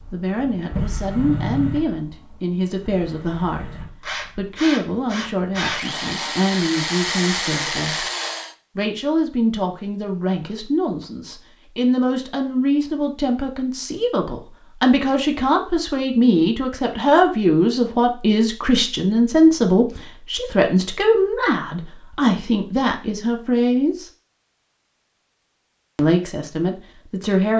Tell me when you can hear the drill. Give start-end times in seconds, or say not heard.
0.0-8.5.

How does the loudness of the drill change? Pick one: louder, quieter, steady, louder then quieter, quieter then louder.
quieter then louder.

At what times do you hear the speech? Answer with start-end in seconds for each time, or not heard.
0.1-8.1, 8.8-24.1, 25.9-27.5.